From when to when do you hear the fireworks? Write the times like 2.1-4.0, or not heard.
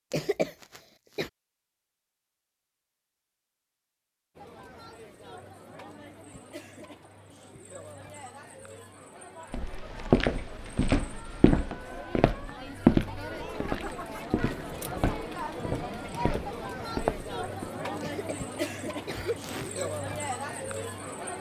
not heard.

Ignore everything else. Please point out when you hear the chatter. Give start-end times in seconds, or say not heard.
4.3-21.3.